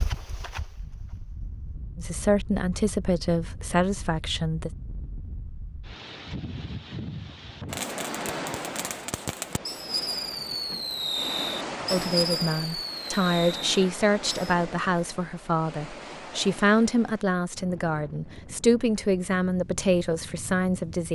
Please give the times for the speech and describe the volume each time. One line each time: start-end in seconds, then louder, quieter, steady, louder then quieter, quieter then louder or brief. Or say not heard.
1.9-4.7 brief
11.9-21.1 steady.